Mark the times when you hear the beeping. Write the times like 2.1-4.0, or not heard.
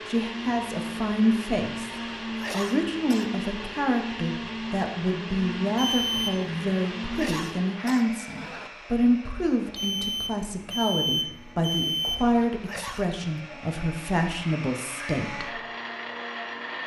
5.8-6.6, 9.8-12.2.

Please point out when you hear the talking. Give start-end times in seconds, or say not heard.
0.1-15.5.